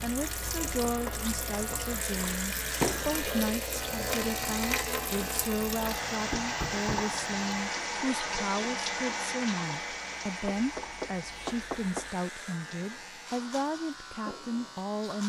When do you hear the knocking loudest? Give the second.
3 s.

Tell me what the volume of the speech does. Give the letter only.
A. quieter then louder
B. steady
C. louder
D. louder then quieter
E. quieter
B.